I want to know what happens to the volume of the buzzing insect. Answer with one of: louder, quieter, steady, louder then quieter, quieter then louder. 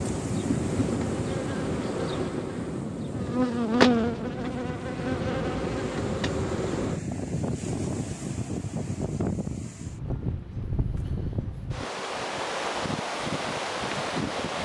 louder then quieter.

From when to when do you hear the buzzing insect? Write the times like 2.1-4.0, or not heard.
0.0-7.0.